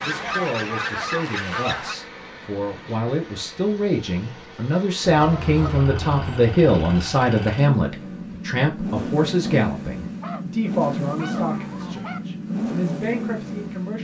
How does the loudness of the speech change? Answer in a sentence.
The volume of the speech goes up, then down.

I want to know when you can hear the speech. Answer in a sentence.
The speech can be heard from 0.0 to 13.9 s.